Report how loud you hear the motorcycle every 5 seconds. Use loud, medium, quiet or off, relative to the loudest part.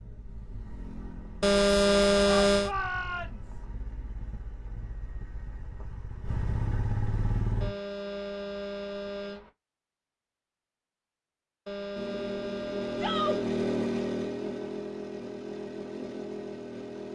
quiet, loud, loud, medium.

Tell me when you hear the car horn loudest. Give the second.
2 s.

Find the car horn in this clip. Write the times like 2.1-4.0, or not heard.
1.4-2.7, 7.6-9.5, 11.7-13.4.